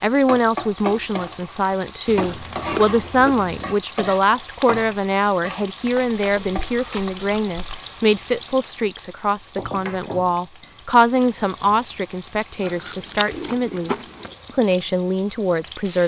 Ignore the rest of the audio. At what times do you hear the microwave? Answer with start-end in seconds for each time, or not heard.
not heard.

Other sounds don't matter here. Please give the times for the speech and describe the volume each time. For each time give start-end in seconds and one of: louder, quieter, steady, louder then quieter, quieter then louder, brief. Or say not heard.
0.0-16.0 steady.